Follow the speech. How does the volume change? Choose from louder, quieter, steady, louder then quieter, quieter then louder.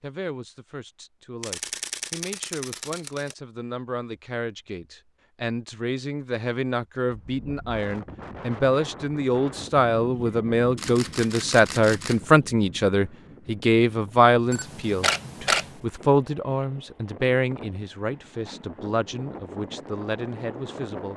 louder then quieter.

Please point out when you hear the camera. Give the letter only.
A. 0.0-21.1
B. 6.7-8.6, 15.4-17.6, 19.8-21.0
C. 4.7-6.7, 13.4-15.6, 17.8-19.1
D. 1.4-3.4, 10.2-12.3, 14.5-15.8
D.